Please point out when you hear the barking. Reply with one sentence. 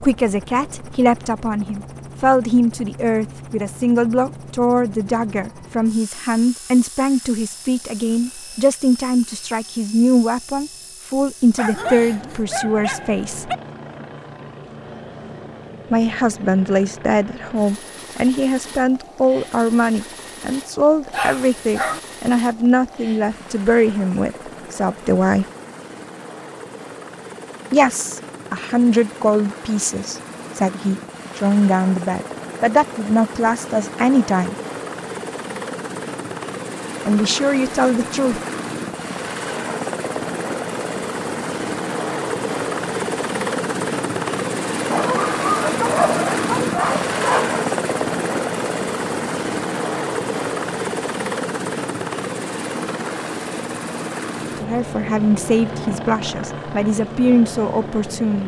You can hear the barking from 11.6 to 13.6 s, from 21.1 to 22.0 s and from 44.9 to 47.6 s.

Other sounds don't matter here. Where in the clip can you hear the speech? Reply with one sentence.
You can hear the speech from 0.0 to 13.5 s, from 15.9 to 25.4 s, from 27.7 to 34.5 s, from 37.0 to 38.4 s and from 54.4 to 58.4 s.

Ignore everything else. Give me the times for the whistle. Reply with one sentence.
The whistle can't be heard in this clip.